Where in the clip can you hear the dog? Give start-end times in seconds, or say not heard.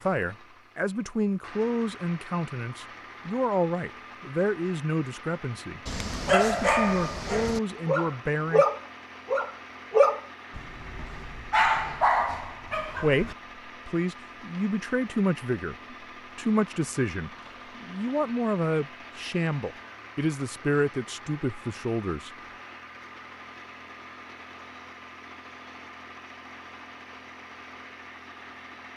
5.8-13.3.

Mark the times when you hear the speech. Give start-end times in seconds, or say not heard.
0.0-8.7, 12.7-22.3.